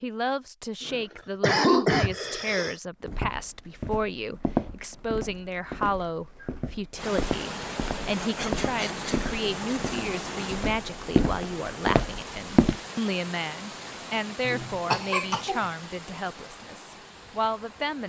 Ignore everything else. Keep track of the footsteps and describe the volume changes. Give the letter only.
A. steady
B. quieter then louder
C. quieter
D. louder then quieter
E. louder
B.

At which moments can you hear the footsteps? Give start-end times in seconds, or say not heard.
3.0-12.8.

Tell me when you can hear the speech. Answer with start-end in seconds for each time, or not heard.
0.0-18.0.